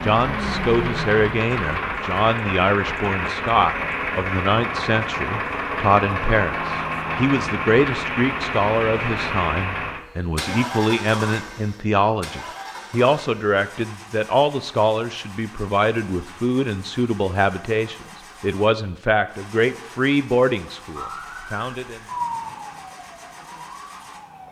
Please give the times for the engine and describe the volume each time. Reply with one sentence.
You can hear the engine from 0.0 to 24.4 s, getting quieter.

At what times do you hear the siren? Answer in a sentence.
The siren can be heard from 20.9 to 24.4 s.